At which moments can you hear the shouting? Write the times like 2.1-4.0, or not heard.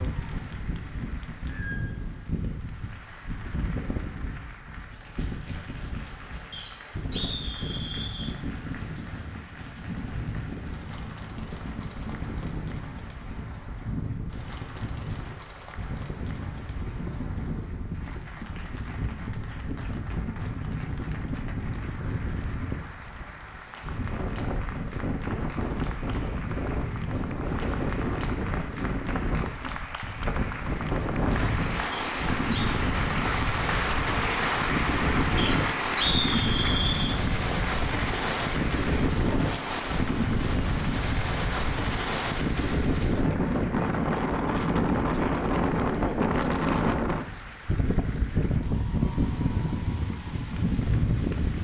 not heard.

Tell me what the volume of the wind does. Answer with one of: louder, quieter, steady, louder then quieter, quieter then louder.
louder.